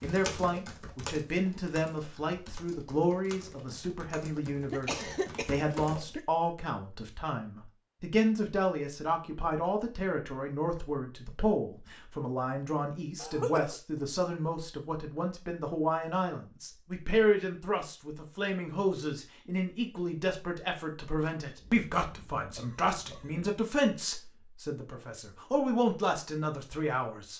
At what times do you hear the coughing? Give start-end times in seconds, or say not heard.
4.2-6.2, 13.2-14.0, 21.6-23.6.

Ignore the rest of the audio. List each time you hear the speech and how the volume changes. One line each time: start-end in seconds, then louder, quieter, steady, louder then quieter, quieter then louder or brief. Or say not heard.
0.0-27.3 steady.